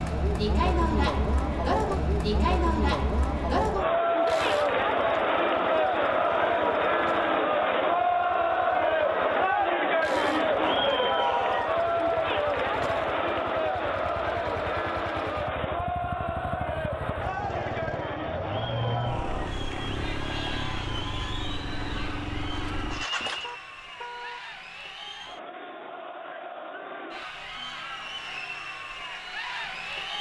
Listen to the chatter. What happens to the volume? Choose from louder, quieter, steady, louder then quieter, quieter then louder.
quieter.